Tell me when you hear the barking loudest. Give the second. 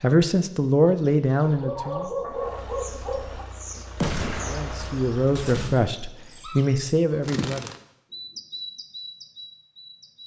2 s.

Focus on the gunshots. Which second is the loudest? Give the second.
4 s.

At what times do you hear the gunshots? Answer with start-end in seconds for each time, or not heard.
4.0-5.8.